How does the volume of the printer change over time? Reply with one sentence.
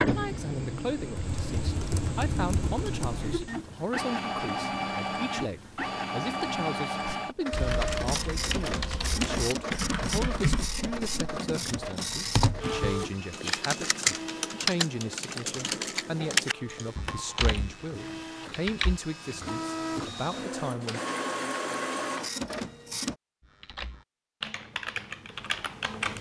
The volume of the printer goes down, then up.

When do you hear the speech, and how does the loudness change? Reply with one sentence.
The speech can be heard from 0.0 to 21.0 s, at a steady volume.